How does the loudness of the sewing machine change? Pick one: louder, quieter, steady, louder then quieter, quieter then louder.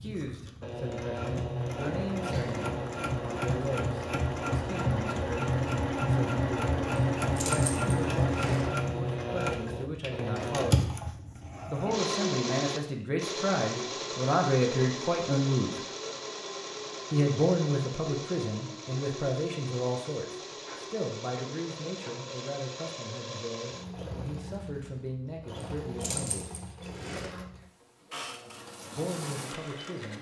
quieter.